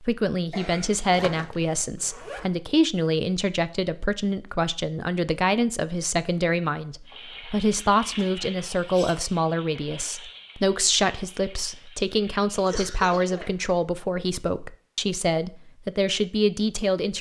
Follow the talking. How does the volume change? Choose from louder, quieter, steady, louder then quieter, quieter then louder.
steady.